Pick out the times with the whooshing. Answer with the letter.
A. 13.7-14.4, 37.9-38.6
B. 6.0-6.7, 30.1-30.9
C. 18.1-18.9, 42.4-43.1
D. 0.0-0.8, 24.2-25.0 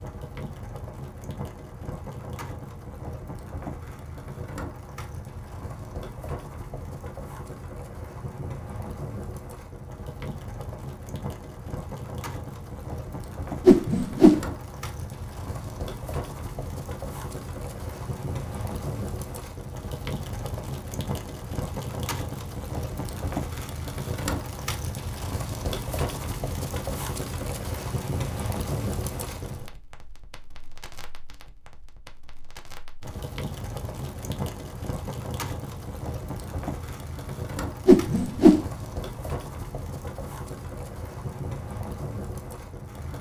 A.